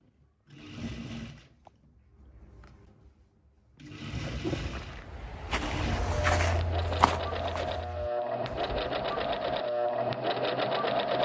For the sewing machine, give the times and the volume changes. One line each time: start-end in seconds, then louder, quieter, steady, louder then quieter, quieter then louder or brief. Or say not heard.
0.0-11.1 louder.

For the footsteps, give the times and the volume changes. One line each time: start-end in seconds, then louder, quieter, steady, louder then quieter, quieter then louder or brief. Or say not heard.
4.5-9.3 louder then quieter.